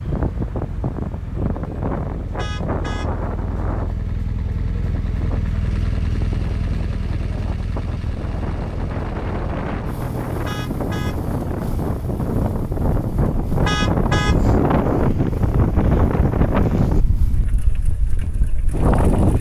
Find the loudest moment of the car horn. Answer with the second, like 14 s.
14 s.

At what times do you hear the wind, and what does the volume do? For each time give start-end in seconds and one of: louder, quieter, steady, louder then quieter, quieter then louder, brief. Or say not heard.
0.0-19.3 quieter then louder.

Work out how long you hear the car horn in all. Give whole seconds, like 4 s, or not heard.
2 s.